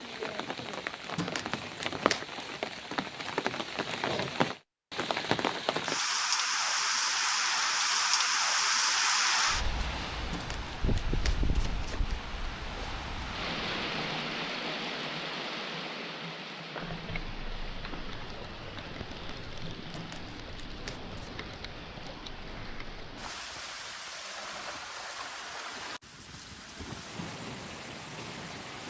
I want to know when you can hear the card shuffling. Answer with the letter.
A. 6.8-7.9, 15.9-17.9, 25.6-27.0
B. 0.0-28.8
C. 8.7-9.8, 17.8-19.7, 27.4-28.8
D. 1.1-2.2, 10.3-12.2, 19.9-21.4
D.